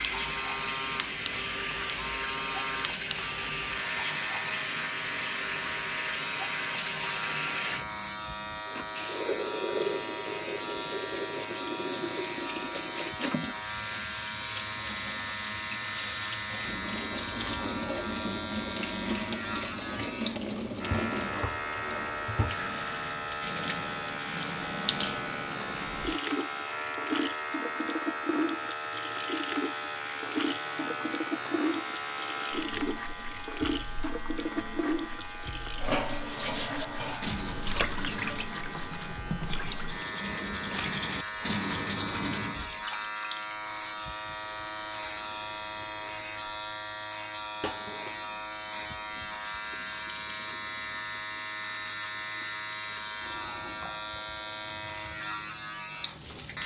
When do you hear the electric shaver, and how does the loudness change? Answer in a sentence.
The electric shaver can be heard from 0.0 to 56.6 s, at a steady volume.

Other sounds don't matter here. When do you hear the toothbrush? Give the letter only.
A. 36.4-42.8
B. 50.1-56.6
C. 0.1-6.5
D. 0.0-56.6
A.